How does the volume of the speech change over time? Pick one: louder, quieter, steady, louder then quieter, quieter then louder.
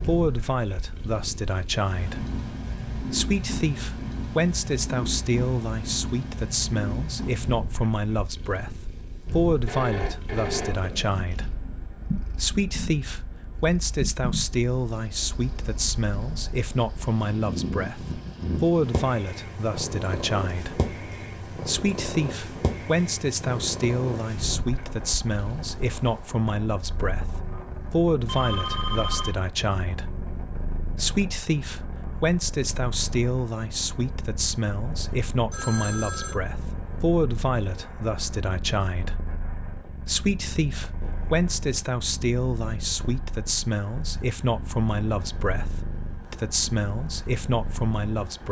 steady.